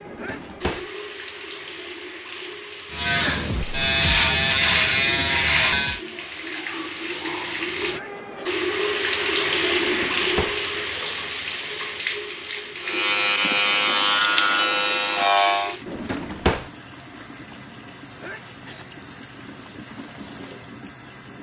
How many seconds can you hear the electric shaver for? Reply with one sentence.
You can hear the electric shaver for 6 seconds altogether.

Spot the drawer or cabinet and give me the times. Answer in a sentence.
The drawer or cabinet can be heard from 0.1 to 0.8 s, from 9.8 to 10.6 s and from 15.8 to 16.7 s.